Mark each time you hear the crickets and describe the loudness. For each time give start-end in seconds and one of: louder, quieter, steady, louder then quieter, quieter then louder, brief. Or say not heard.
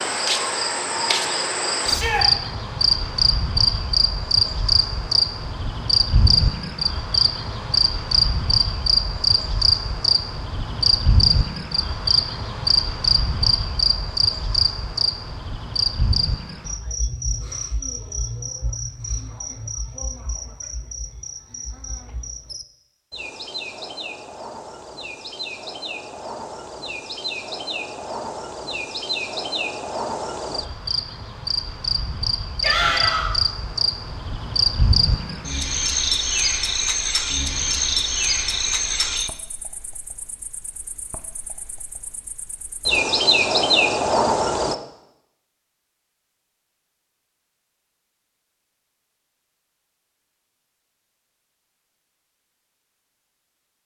0.0-44.8 quieter then louder.